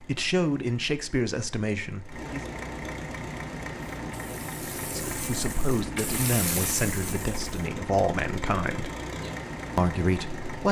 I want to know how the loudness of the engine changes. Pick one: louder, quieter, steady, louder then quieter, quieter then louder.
louder.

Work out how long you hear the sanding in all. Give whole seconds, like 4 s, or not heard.
not heard.